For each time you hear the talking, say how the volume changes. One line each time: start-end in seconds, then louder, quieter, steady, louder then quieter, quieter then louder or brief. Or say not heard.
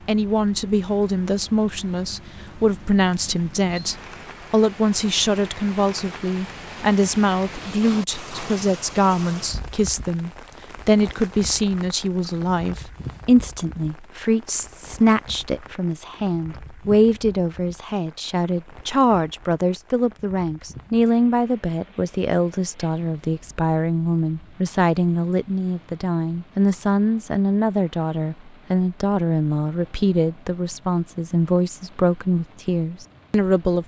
0.1-33.8 steady.